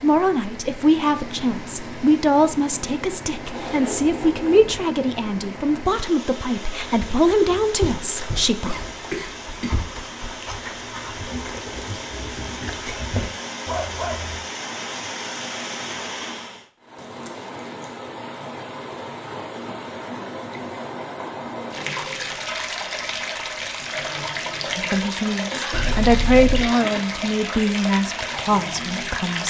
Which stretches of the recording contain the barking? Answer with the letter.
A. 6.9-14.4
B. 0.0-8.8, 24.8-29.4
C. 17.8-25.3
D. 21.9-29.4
A.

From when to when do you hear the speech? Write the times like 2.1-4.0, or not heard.
0.0-8.8, 24.8-29.4.